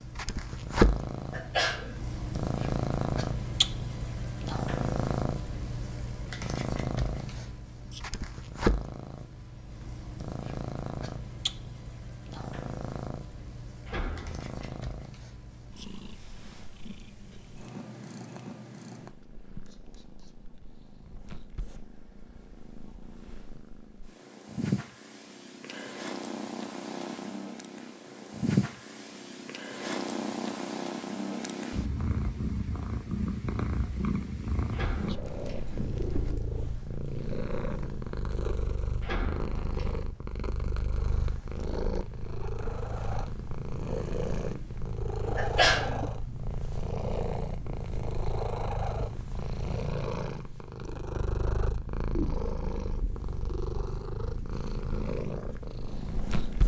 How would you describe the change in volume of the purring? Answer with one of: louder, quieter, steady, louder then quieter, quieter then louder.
quieter then louder.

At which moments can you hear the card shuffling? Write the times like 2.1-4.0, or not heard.
not heard.